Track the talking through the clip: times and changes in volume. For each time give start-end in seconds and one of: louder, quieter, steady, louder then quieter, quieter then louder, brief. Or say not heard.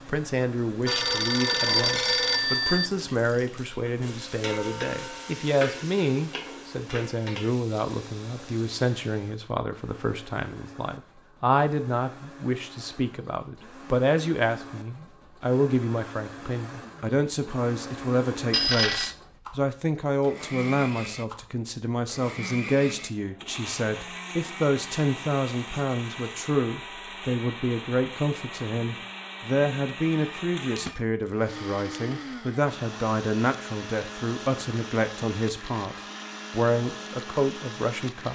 0.1-38.3 steady.